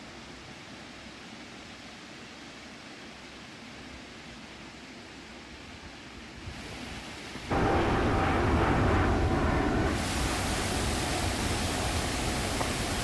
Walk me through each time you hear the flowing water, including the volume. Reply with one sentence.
You can hear the flowing water from 0.0 to 12.9 s, getting louder.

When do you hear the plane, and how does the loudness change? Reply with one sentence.
The plane can be heard from 7.5 to 12.9 s, getting quieter.